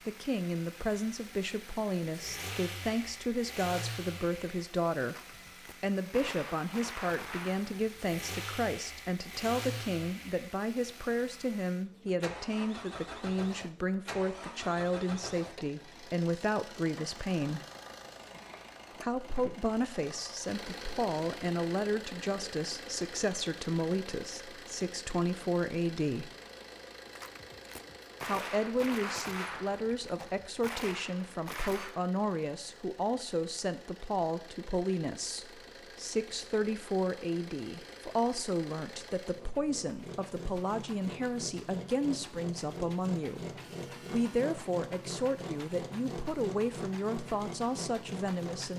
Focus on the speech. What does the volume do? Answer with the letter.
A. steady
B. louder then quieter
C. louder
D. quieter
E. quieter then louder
A.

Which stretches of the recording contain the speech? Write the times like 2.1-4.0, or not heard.
0.1-5.2, 5.8-17.6, 19.0-26.3, 28.2-48.7.